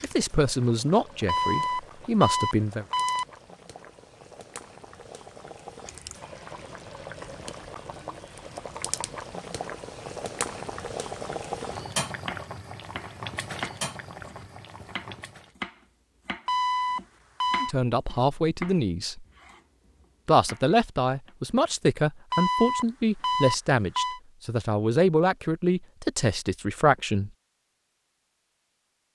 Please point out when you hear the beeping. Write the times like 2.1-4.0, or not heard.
1.2-3.2, 16.4-17.8, 22.3-24.2.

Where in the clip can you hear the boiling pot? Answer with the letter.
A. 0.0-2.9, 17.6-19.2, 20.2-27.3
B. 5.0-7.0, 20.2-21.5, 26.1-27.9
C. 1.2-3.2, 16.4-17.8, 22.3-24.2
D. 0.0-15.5
D.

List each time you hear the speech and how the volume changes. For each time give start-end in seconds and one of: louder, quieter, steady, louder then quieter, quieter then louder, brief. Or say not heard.
0.0-2.9 brief
17.6-19.2 brief
20.2-27.3 steady.